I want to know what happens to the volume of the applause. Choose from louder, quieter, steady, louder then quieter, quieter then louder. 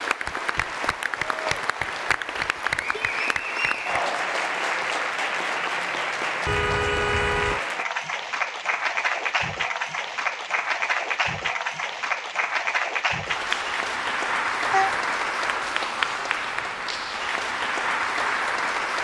steady.